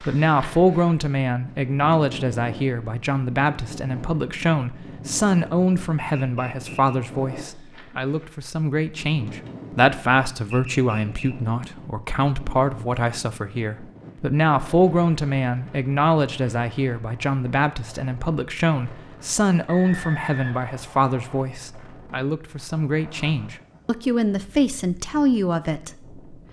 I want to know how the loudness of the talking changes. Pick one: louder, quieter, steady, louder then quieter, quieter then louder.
steady.